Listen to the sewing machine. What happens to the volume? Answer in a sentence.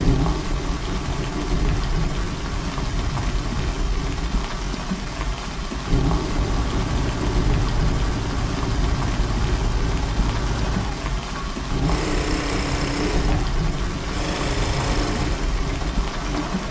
The loudness of the sewing machine stays about the same.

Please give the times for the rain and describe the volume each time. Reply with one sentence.
The rain can be heard from 0.0 to 16.6 s, at a steady volume.